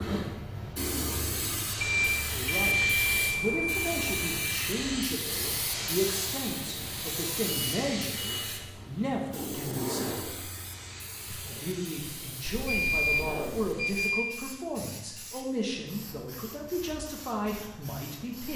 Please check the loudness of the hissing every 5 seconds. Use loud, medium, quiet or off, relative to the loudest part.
loud, loud, medium, quiet.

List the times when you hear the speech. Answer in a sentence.
The speech can be heard from 2.3 to 10.5 s and from 11.3 to 18.5 s.